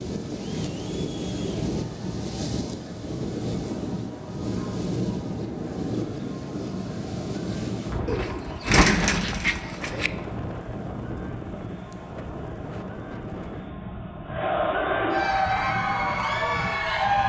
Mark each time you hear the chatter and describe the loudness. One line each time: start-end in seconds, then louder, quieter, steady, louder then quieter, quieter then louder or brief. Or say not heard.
0.0-17.2 louder.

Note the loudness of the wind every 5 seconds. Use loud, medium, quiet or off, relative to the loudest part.
loud, loud, medium, medium.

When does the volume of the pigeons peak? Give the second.
9 s.